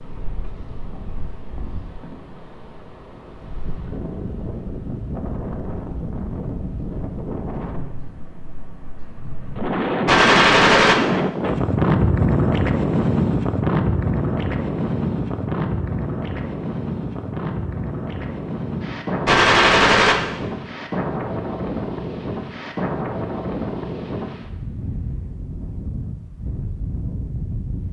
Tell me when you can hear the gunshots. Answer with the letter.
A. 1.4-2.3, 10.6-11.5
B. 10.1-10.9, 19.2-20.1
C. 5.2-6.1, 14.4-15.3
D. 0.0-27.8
B.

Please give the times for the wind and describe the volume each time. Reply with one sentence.
You can hear the wind from 0.0 to 27.8 s, getting louder then quieter.